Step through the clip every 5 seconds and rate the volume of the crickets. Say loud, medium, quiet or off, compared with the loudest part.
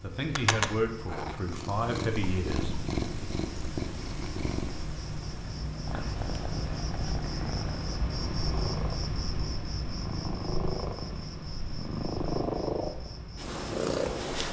medium, loud, medium.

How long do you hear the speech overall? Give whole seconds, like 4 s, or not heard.
3 s.